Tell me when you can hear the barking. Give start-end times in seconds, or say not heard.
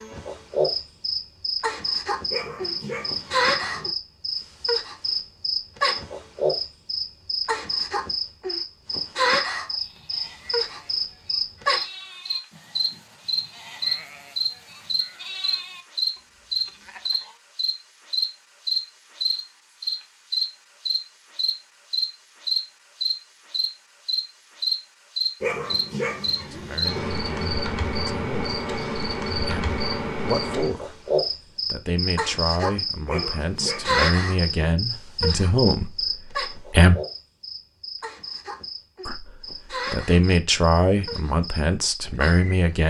2.3-3.9, 25.4-27.0, 33.0-34.6.